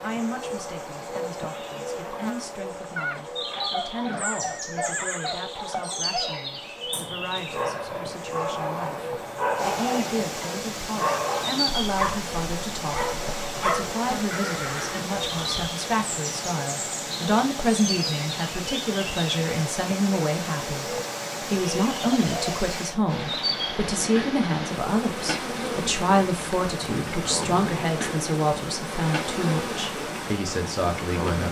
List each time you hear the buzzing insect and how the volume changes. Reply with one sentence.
You can hear the buzzing insect from 0.0 to 31.4 s, at a steady volume.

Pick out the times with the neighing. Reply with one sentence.
The neighing can be heard from 3.0 to 5.4 s, from 14.3 to 15.7 s and from 21.9 to 22.6 s.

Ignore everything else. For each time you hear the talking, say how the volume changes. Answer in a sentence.
The talking can be heard from 0.0 to 31.4 s, getting louder.